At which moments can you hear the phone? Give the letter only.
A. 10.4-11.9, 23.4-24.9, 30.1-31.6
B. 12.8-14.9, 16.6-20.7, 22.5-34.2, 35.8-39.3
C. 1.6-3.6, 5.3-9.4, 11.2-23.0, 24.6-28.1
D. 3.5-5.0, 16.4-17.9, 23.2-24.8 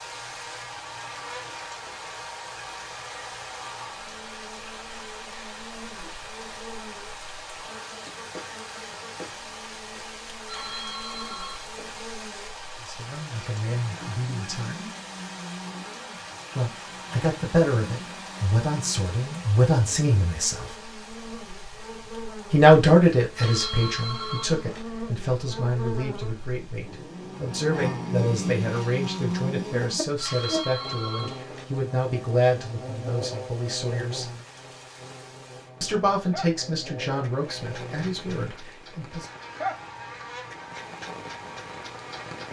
A.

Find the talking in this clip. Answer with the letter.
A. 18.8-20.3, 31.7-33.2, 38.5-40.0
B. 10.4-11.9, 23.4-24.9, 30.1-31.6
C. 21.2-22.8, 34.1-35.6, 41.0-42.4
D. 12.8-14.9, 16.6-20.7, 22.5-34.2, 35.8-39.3
D.